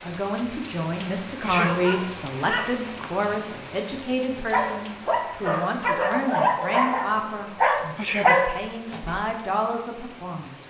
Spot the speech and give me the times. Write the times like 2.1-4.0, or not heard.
0.0-10.6.